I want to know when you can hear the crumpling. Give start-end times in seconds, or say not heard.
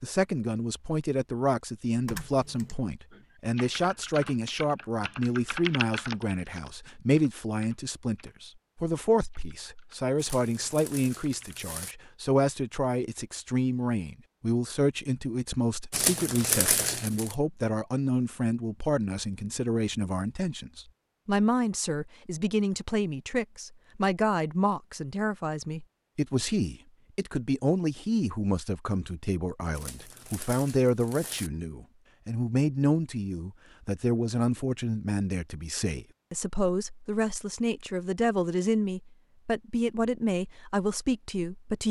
10.2-11.9, 15.9-17.4, 29.7-31.5.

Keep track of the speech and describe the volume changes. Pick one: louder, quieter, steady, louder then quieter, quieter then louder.
steady.